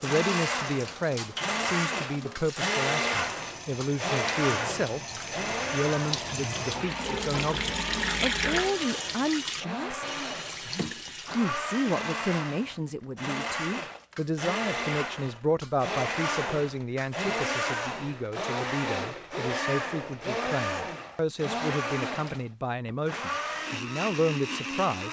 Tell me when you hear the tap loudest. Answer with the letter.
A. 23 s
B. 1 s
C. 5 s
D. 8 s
D.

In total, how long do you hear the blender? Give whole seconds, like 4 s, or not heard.
25 s.